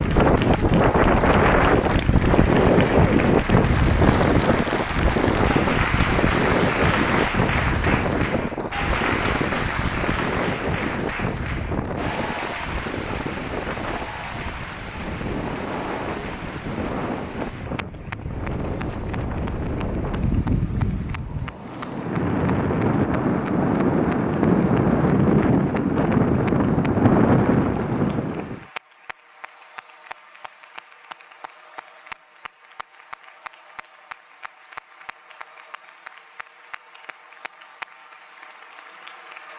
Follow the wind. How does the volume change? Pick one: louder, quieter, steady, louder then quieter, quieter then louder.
quieter then louder.